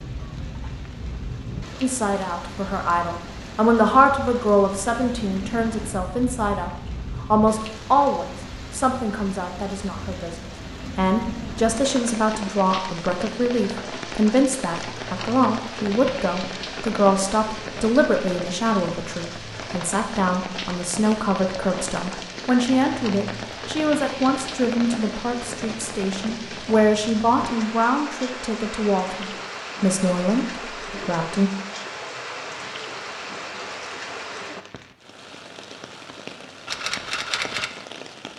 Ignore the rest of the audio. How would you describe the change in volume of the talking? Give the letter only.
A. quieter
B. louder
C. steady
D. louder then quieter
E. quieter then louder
C.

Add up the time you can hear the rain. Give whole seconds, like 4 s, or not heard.
38 s.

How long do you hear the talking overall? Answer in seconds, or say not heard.
30 s.